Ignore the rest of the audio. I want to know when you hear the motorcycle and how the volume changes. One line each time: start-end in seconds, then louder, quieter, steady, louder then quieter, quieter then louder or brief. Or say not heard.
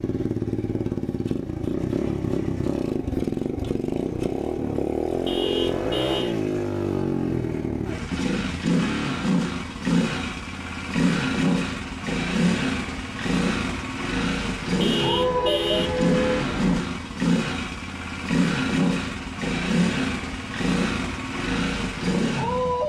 0.0-22.8 steady.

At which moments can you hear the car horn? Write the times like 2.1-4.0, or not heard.
5.2-6.3, 14.8-16.8.